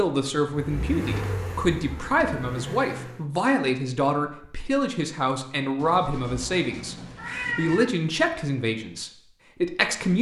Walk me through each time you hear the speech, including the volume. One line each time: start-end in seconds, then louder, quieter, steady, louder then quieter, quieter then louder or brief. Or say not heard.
0.0-10.1 steady.